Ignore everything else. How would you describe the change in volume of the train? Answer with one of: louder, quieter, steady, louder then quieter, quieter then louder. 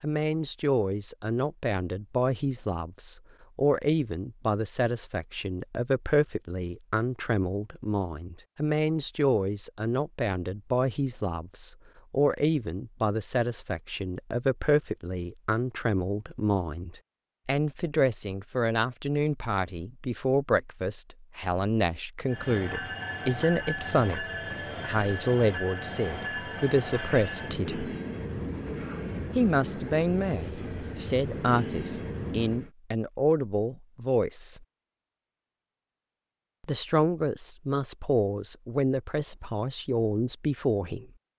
steady.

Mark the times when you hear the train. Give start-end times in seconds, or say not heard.
22.2-32.7.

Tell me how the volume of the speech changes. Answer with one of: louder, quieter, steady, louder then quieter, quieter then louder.
steady.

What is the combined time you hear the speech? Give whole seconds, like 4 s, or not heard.
38 s.